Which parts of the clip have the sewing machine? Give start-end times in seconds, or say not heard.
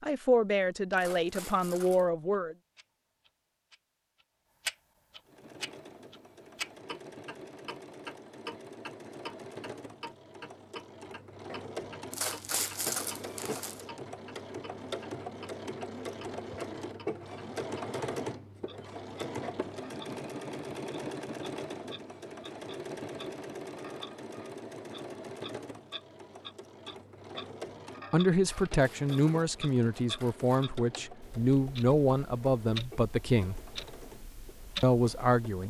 5.2-35.6.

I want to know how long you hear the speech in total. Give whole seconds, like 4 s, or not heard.
9 s.